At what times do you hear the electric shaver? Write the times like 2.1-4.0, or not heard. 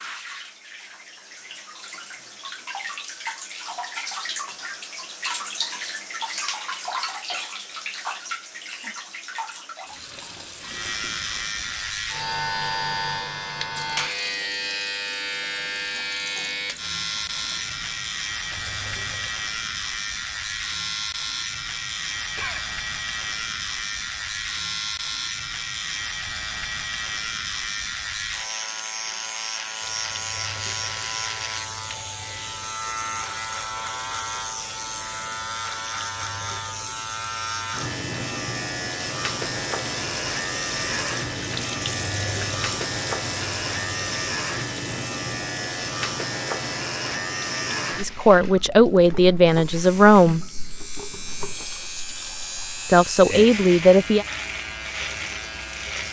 10.6-56.0.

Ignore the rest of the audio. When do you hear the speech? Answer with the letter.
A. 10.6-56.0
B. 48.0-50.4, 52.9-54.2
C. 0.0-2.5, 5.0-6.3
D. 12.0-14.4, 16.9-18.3
B.